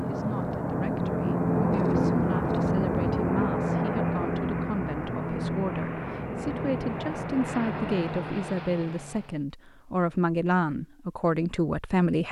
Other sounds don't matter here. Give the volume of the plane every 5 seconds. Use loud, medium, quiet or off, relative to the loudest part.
loud, medium, off.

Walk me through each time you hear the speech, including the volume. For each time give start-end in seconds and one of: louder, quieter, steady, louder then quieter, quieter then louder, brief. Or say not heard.
0.0-12.2 louder.